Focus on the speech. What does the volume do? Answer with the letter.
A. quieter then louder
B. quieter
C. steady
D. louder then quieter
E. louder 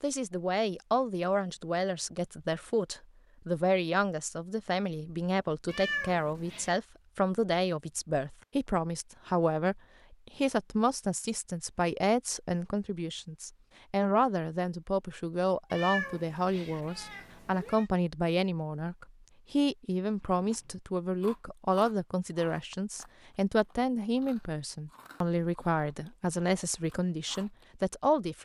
C.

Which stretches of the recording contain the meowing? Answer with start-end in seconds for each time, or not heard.
5.7-6.8, 15.7-17.9.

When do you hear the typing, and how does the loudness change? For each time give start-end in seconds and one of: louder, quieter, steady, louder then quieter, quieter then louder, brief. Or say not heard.
not heard.